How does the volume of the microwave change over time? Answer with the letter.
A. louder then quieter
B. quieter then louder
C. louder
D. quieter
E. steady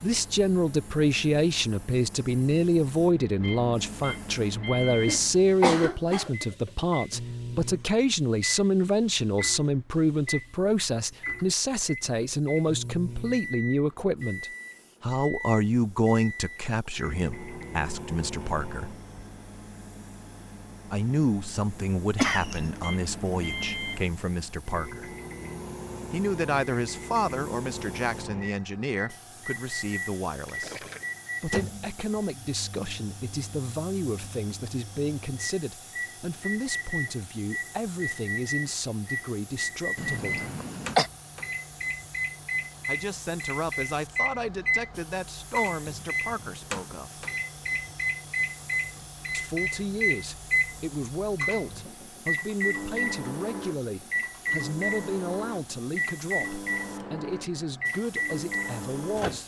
C.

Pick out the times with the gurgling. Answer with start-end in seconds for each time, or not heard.
30.4-31.1.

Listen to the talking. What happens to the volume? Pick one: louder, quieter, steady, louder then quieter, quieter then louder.
quieter.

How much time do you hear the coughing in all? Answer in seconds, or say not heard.
3 s.